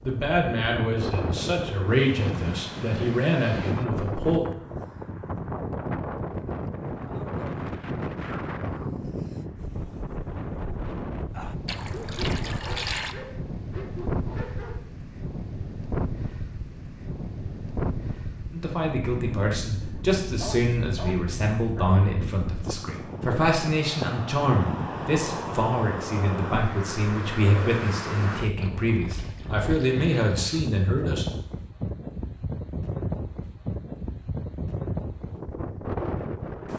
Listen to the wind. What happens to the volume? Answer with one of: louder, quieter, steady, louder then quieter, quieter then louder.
steady.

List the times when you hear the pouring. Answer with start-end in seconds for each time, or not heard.
11.7-13.2, 28.6-30.7.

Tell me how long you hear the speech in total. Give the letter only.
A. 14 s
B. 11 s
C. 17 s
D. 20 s
C.